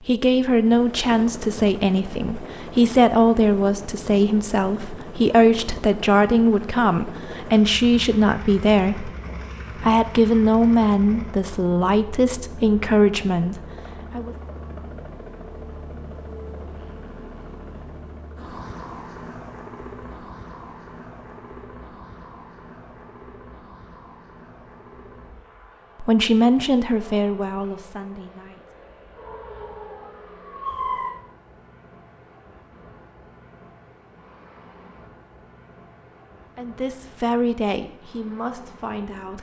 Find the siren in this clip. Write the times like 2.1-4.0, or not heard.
29.1-31.1.